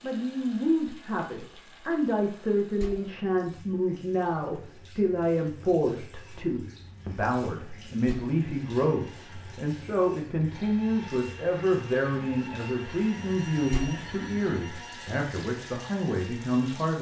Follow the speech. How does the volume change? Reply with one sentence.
The volume of the speech stays about the same.